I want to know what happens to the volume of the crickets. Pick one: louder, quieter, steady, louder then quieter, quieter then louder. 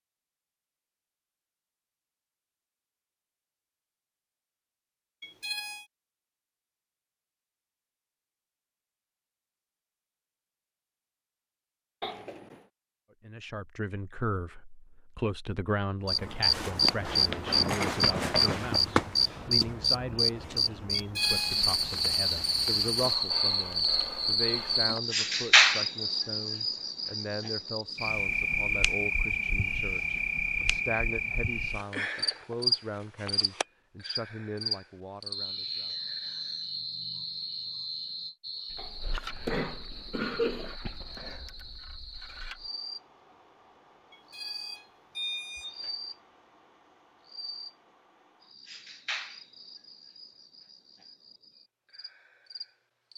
quieter.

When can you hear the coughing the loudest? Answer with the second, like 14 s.
40 s.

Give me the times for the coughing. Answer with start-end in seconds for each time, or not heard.
12.0-12.6, 38.8-40.8.